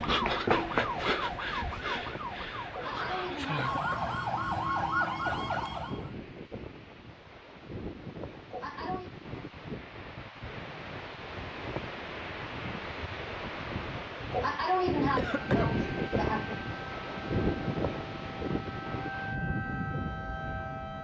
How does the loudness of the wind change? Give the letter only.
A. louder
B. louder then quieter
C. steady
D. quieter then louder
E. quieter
A.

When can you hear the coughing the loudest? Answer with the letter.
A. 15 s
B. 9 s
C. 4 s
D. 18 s
A.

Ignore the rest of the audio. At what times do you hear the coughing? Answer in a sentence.
The coughing can be heard from 2.7 to 4.2 s, from 8.5 to 9.1 s and from 14.3 to 16.6 s.